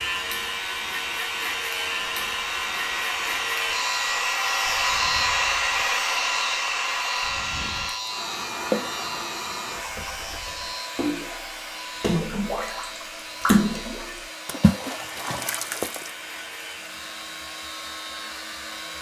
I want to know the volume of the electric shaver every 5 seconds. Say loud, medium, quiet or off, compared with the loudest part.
loud, loud, medium, medium.